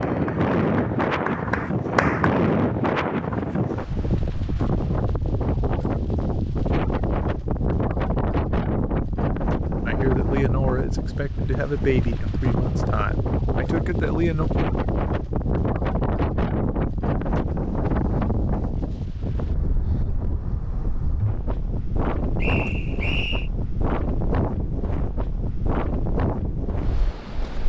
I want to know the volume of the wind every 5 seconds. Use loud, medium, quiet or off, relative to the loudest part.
loud, loud, loud, loud, medium, medium.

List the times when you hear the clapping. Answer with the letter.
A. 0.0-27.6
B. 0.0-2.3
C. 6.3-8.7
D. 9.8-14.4
B.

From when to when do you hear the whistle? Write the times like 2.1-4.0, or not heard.
22.4-23.5.